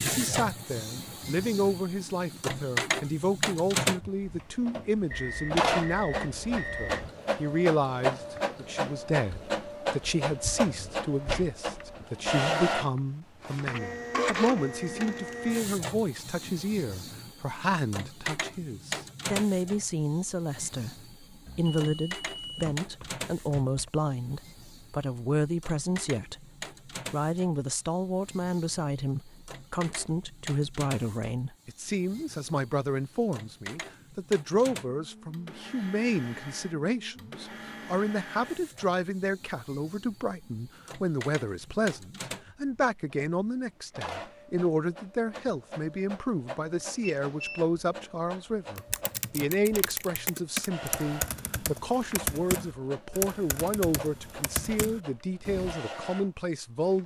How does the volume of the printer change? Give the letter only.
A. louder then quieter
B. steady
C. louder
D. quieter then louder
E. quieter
E.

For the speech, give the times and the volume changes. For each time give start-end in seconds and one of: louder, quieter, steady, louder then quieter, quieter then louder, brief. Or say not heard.
0.0-57.0 steady.